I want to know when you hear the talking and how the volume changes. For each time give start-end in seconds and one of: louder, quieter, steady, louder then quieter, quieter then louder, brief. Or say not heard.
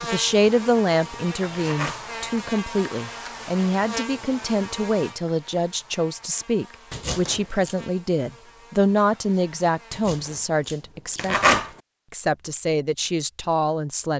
0.0-14.1 steady.